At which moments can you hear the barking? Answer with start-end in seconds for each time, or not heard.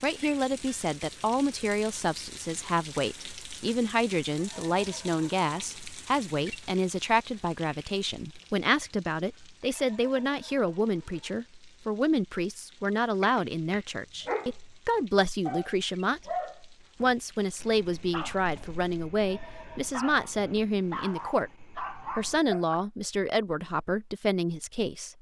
13.2-22.9.